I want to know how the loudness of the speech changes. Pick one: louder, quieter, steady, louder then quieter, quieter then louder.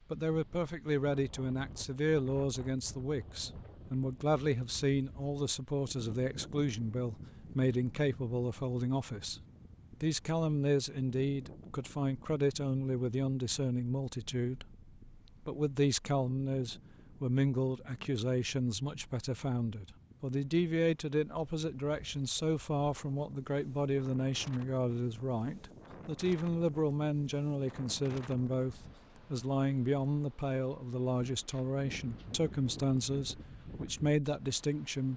steady.